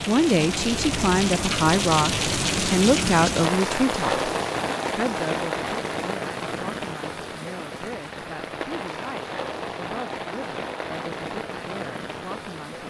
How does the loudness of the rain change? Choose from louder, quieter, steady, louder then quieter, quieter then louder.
quieter.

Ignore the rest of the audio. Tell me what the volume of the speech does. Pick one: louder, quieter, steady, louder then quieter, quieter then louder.
quieter.